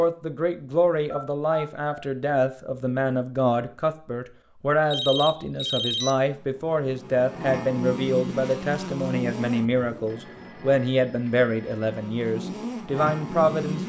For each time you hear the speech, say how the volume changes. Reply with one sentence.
You can hear the speech from 0.0 to 13.8 s, at a steady volume.